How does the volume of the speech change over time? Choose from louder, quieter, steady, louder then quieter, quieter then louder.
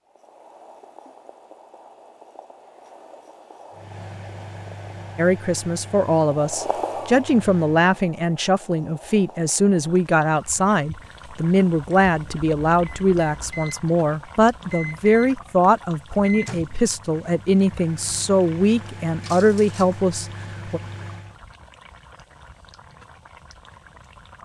steady.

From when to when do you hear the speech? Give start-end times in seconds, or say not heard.
5.2-20.8.